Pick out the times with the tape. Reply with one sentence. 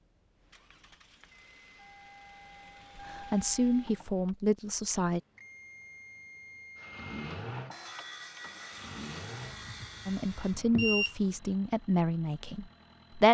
The tape can't be heard in this clip.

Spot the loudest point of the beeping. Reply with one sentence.
The volume of the beeping peaks at 11 seconds.